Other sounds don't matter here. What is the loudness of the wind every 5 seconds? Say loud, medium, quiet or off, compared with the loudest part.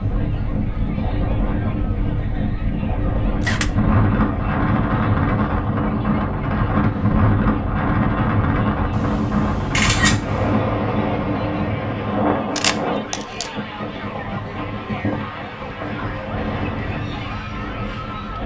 loud, loud, loud, medium.